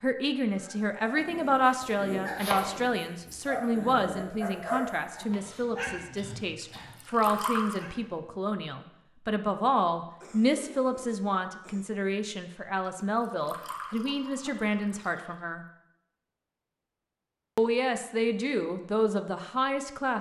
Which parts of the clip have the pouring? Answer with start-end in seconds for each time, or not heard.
6.8-7.8, 13.0-15.4.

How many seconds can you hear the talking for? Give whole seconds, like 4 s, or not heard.
18 s.